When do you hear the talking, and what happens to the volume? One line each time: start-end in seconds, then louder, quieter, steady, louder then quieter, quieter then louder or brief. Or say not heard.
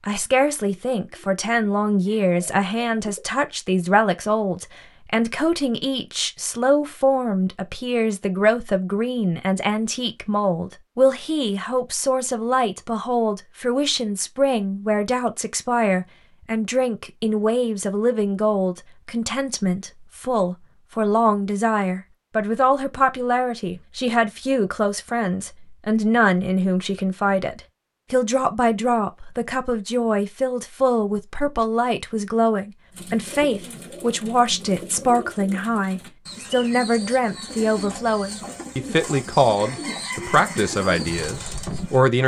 0.1-42.2 steady.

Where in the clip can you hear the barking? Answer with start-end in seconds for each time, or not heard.
not heard.